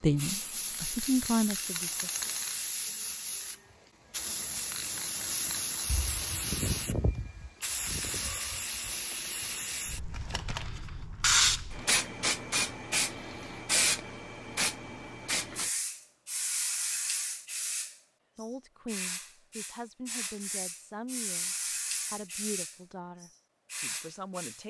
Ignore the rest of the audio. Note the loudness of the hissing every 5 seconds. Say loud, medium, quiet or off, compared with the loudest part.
medium, medium, loud, medium, medium.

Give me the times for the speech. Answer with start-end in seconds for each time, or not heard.
0.0-2.1, 18.4-24.6.